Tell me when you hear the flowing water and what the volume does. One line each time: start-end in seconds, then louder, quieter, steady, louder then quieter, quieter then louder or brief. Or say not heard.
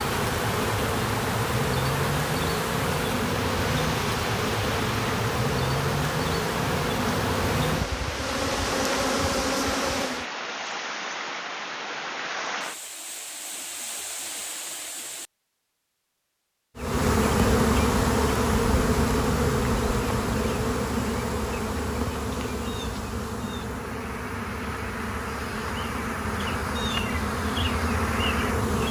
0.0-15.3 steady.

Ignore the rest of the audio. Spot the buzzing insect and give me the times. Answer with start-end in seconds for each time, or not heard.
0.0-10.2, 16.8-28.8.